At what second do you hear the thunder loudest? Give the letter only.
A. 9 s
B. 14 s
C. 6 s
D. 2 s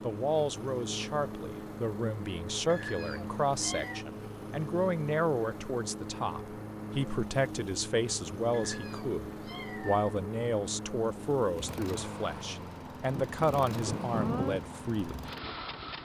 B.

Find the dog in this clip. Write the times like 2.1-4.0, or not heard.
not heard.